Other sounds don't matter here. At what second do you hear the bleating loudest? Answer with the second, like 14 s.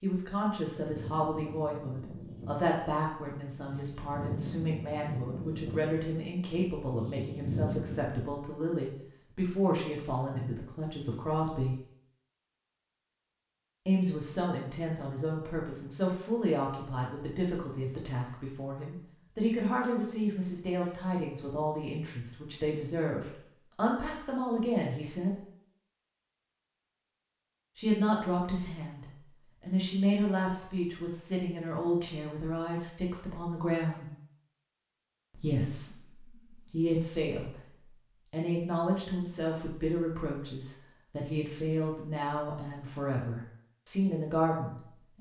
8 s.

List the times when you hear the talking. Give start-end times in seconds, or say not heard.
0.0-11.8, 13.8-25.4, 27.8-34.0, 35.3-37.7, 38.3-45.1.